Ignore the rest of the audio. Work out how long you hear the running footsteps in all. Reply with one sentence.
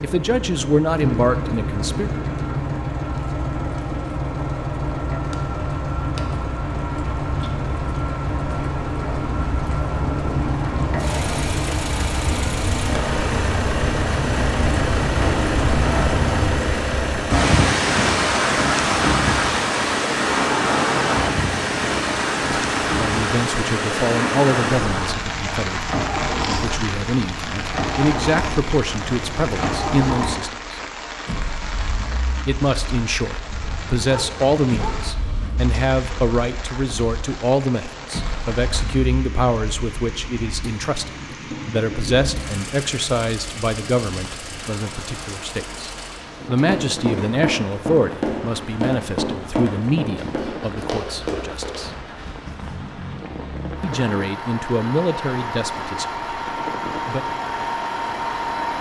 You can hear the running footsteps for 5 seconds altogether.